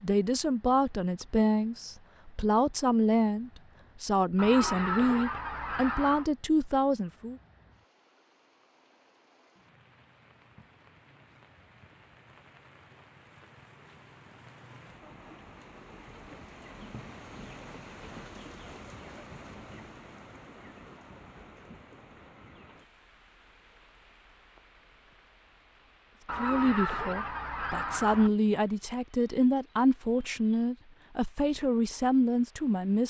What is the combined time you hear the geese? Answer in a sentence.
You can hear the geese for 4 seconds altogether.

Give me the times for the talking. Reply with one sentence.
The talking can be heard from 0.0 to 7.3 s and from 26.4 to 33.0 s.